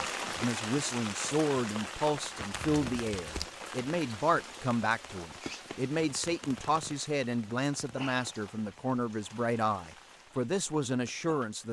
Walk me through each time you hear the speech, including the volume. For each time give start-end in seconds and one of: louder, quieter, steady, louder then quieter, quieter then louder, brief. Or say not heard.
0.0-11.6 steady.